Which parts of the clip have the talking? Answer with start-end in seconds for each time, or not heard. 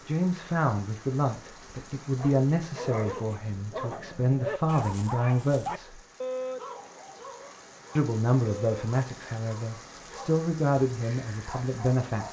0.1-6.0, 8.0-12.2.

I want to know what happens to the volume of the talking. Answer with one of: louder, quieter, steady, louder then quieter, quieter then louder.
steady.